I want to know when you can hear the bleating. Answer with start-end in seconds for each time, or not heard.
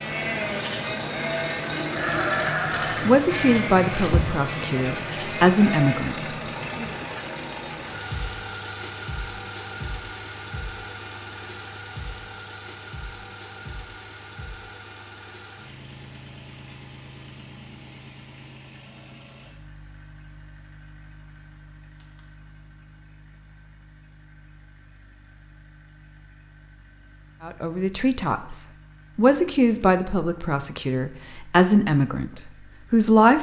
0.0-6.2.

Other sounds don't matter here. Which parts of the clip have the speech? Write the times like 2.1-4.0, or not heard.
3.0-6.9, 27.4-33.3.